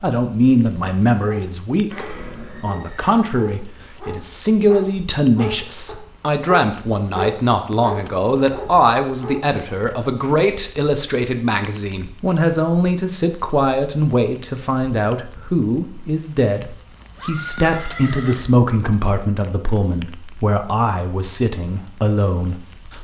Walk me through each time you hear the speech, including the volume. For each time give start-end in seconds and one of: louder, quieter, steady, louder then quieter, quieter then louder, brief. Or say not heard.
0.0-22.9 steady.